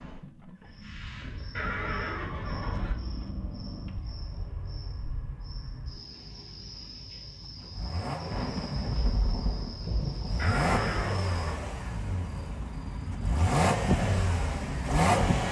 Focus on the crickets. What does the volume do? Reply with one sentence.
The loudness of the crickets stays about the same.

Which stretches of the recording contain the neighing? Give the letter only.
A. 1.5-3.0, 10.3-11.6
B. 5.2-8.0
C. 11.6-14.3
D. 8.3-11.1
A.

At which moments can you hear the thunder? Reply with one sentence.
The thunder can be heard from 8.3 to 11.1 s.